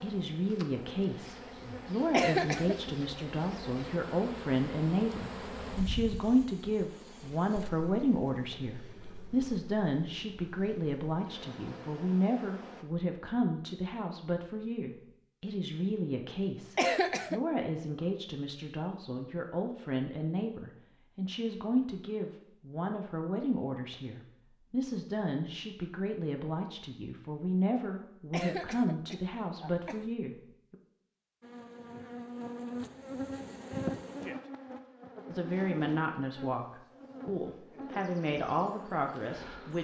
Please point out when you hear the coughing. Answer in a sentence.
The coughing can be heard from 2.1 to 2.8 s, from 16.8 to 17.4 s and from 28.3 to 30.1 s.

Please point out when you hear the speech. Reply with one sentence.
The speech can be heard from 0.0 to 30.8 s and from 35.3 to 39.7 s.